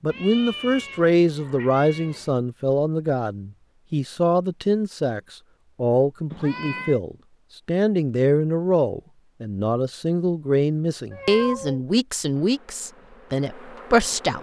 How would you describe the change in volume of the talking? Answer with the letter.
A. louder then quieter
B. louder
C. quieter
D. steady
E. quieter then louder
D.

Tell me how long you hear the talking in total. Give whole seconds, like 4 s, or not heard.
14 s.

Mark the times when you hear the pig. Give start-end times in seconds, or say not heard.
not heard.